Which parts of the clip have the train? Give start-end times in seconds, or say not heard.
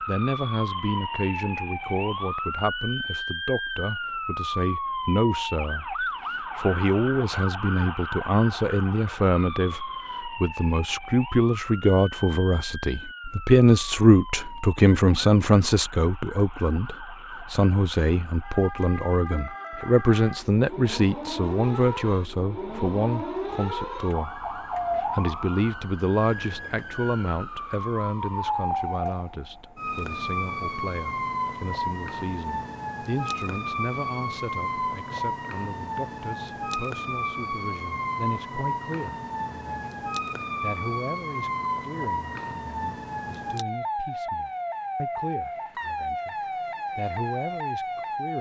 not heard.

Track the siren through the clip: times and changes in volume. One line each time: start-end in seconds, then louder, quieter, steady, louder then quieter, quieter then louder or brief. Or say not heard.
0.0-48.3 quieter then louder.